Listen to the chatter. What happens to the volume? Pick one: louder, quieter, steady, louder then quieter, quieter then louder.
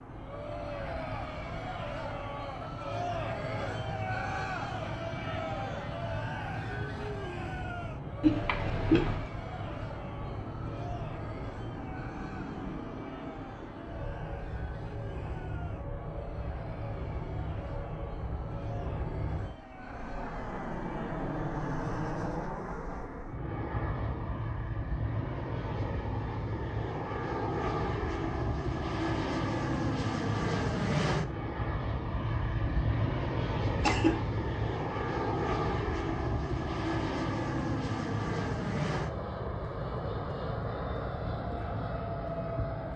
quieter.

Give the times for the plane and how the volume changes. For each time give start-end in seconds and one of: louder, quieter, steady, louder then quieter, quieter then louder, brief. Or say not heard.
0.0-42.9 louder.